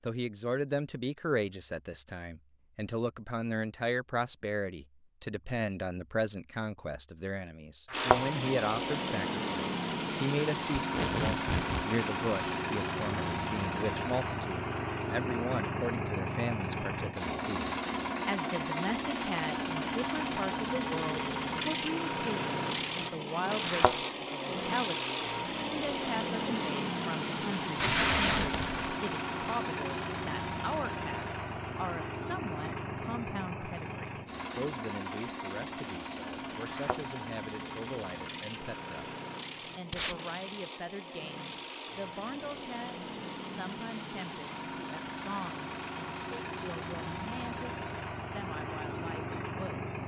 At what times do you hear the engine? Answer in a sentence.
The engine can be heard from 7.9 to 50.0 s.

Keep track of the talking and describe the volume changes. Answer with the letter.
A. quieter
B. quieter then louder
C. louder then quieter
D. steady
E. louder
A.